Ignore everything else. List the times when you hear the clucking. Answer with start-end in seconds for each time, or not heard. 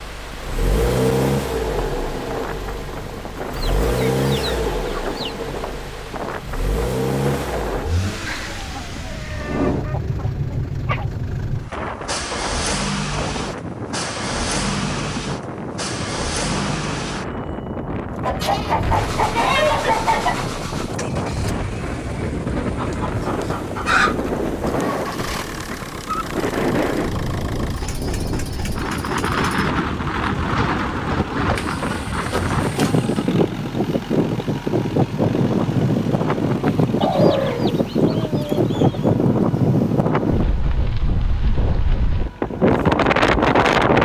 3.5-5.3, 8.2-11.1, 18.2-20.5, 22.8-24.3, 31.6-33.4, 37.0-39.0.